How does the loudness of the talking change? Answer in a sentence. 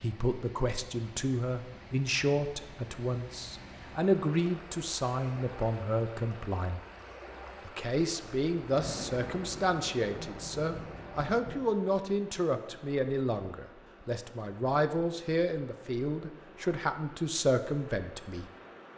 The volume of the talking stays about the same.